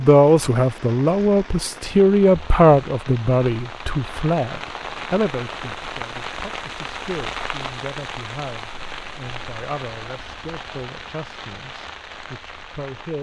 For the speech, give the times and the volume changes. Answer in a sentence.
You can hear the speech from 0.0 to 13.1 s, getting quieter.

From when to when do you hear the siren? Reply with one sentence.
You can't hear the siren here.